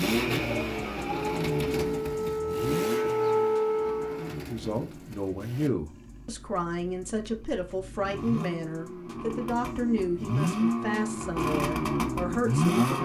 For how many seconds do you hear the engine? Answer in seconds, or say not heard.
13 s.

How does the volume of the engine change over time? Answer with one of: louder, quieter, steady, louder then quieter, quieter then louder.
quieter then louder.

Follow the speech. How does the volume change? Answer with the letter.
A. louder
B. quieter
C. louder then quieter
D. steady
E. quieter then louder
D.